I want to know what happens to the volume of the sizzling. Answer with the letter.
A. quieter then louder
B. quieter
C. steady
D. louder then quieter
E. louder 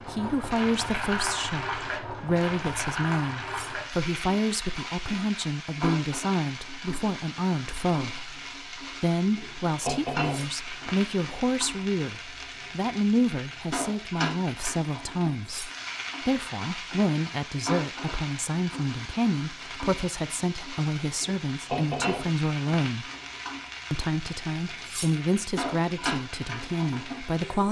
C.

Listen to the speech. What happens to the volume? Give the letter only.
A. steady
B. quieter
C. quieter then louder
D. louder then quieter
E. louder
A.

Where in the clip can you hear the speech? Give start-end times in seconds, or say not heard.
0.1-23.1, 23.9-27.6.